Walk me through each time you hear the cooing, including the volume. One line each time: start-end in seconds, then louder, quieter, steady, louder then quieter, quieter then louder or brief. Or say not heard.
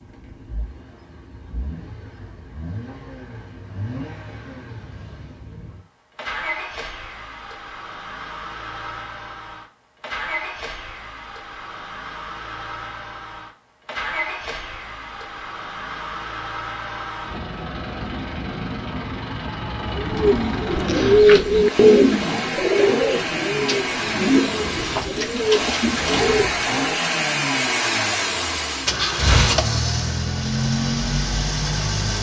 19.9-26.8 quieter.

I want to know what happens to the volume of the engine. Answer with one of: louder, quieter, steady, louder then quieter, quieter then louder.
louder.